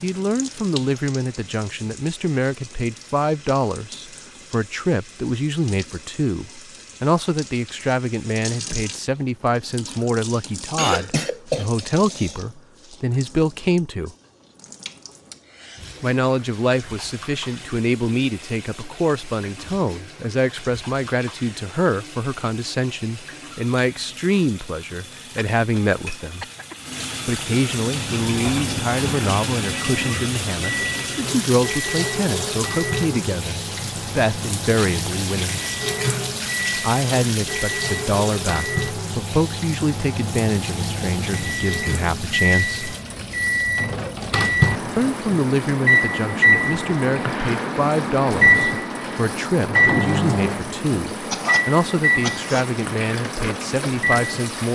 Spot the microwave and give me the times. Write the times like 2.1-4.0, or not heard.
27.8-54.6.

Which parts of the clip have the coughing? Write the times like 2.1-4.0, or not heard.
10.8-12.4, 25.6-26.9, 51.3-52.7.